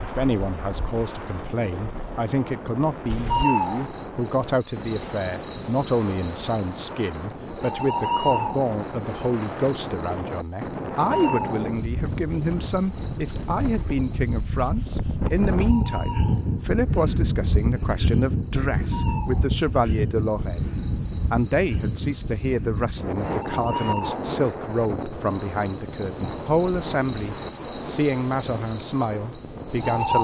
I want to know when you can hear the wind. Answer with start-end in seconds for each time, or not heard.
0.0-30.1.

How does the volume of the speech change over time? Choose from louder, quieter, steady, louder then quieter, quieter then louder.
steady.